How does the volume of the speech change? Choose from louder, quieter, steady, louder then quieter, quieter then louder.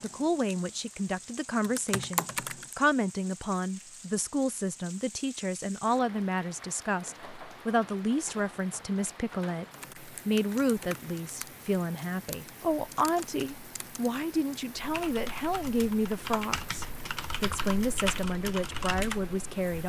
steady.